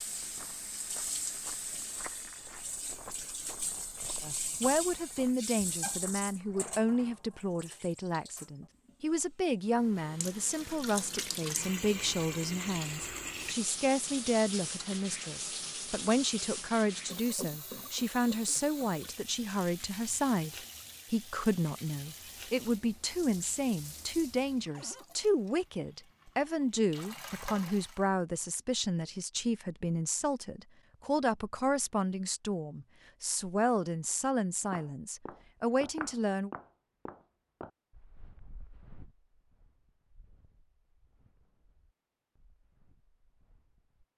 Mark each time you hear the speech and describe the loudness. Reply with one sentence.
You can hear the speech from 4.2 to 36.5 s, at a steady volume.